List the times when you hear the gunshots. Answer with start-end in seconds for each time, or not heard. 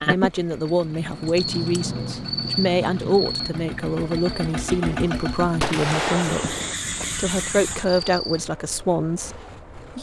5.6-6.8.